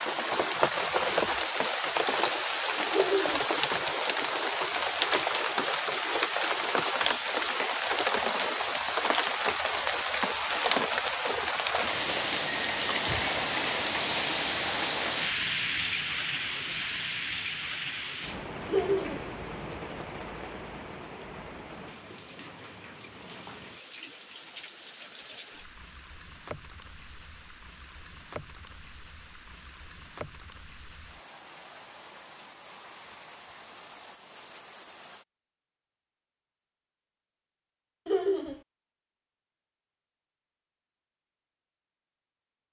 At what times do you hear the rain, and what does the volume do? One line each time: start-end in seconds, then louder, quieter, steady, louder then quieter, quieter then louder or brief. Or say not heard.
0.0-35.2 quieter.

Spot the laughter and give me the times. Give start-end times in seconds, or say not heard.
2.9-3.5, 18.6-19.2, 38.0-38.6.